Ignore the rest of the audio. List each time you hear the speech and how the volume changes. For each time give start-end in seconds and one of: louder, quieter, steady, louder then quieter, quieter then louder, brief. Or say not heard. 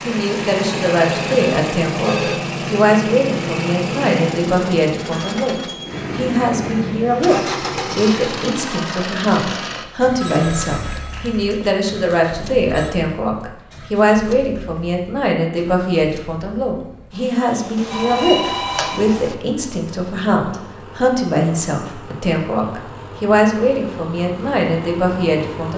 0.0-25.7 steady.